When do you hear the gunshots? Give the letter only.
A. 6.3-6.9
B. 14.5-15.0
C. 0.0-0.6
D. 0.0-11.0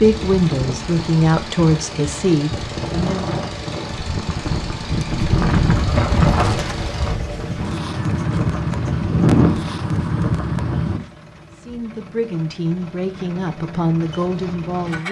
A.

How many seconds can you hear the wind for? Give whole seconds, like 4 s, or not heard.
11 s.